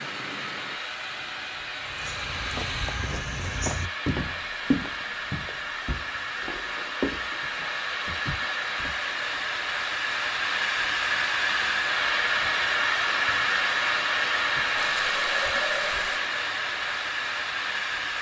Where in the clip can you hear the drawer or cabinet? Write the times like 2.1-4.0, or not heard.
not heard.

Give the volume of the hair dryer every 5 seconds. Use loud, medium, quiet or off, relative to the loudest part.
medium, medium, loud, loud.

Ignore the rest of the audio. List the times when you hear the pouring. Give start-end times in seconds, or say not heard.
14.8-16.2.